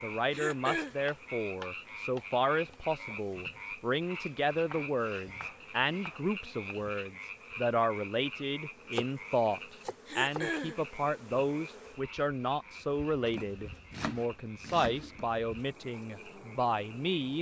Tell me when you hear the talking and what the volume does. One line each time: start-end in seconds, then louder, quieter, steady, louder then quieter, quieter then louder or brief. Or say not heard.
0.0-17.3 steady.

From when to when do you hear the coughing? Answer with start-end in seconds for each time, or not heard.
0.3-0.9, 10.1-10.8.